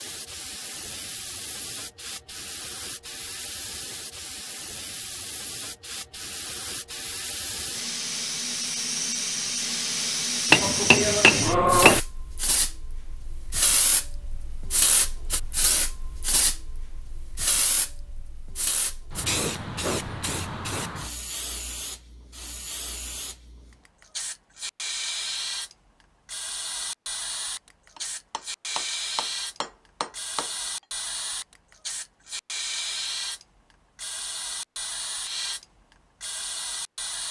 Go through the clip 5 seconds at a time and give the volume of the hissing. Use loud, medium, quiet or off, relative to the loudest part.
medium, loud, loud, loud, medium, medium, medium, medium.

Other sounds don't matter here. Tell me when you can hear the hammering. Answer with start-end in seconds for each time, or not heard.
10.5-12.0, 27.9-30.4.